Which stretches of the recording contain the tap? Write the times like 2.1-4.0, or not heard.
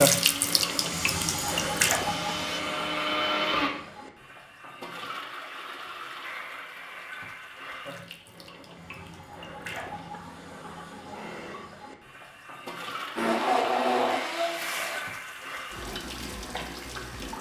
0.0-17.3.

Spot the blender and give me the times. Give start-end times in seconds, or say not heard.
0.0-3.7, 13.2-15.0.